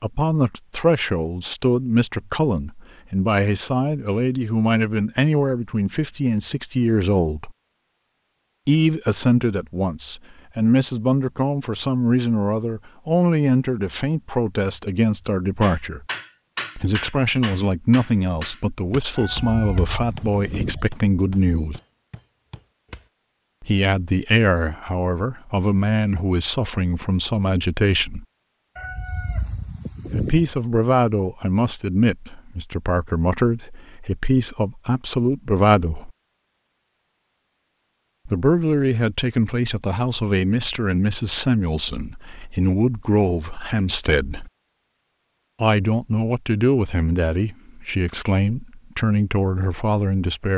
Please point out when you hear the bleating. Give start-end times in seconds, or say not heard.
not heard.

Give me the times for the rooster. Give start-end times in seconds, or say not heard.
19.1-20.9, 28.8-30.5.